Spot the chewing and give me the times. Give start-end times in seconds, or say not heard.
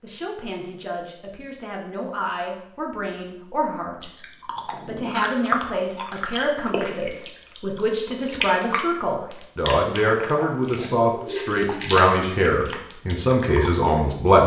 4.0-13.7.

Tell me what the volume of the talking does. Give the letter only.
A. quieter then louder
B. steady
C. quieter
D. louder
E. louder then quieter
D.